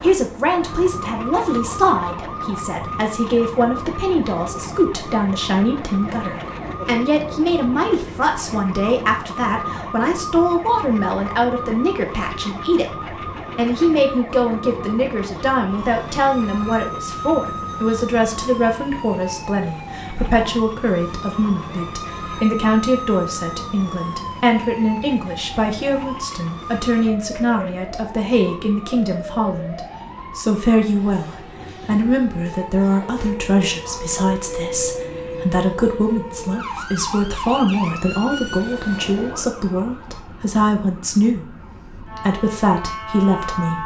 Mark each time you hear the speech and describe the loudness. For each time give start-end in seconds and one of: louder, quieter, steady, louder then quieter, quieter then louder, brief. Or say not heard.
0.0-43.8 steady.